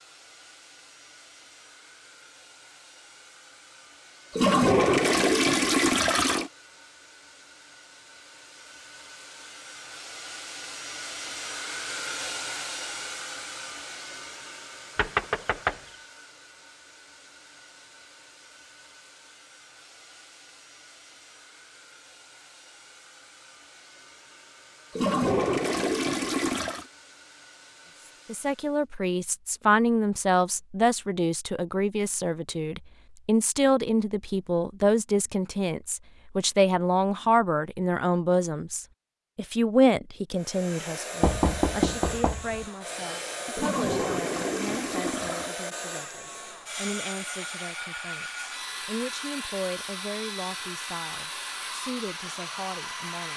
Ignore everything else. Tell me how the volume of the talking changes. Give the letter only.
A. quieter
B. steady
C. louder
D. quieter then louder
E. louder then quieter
A.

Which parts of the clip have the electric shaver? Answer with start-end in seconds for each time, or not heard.
not heard.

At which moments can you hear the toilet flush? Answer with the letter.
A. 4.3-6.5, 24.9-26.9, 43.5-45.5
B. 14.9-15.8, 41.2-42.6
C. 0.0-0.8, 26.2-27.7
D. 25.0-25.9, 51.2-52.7
A.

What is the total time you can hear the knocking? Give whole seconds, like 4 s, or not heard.
2 s.